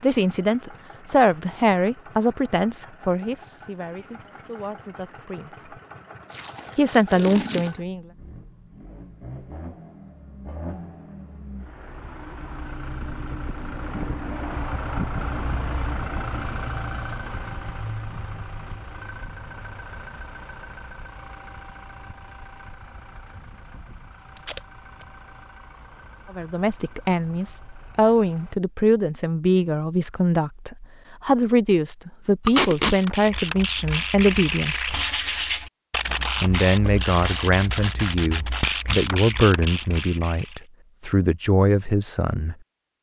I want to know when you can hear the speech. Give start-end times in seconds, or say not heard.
0.0-5.8, 6.8-8.1, 26.3-35.0, 36.4-42.5.